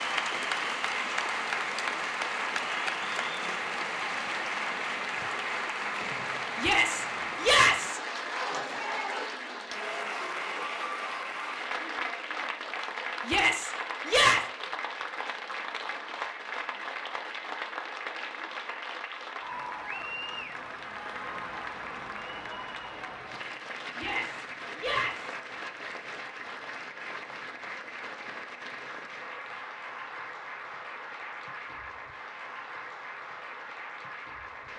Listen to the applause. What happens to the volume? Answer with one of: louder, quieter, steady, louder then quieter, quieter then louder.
quieter.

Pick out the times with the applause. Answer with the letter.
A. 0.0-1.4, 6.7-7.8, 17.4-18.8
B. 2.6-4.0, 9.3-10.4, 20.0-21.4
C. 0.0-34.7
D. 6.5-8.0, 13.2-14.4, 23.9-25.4
C.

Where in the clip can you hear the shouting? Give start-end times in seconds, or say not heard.
6.5-8.0, 13.2-14.4, 23.9-25.4.